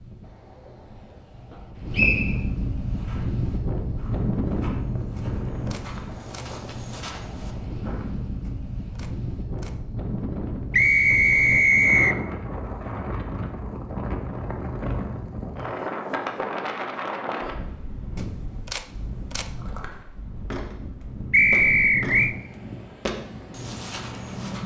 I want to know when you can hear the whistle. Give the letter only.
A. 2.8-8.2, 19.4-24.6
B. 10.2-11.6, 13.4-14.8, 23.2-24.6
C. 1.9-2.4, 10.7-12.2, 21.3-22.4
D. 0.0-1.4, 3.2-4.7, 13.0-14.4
C.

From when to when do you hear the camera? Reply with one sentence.
You can hear the camera from 5.2 to 6.5 s, from 8.4 to 9.8 s and from 18.1 to 19.6 s.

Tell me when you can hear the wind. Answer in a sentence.
You can hear the wind from 0.0 to 24.6 s.